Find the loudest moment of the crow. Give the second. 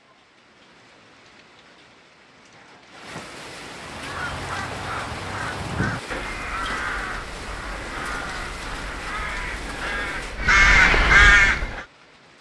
11 s.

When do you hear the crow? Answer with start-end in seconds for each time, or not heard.
3.8-11.8.